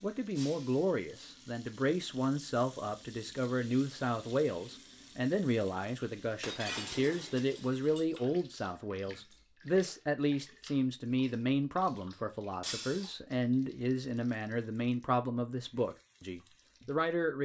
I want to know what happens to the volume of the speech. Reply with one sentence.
The volume of the speech stays about the same.